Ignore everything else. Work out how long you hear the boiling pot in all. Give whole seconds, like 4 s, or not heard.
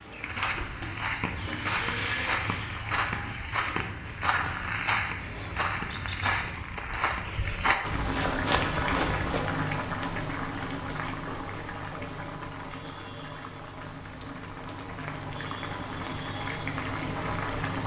10 s.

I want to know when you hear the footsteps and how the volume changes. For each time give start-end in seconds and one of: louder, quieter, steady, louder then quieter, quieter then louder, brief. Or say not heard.
0.0-9.6 steady.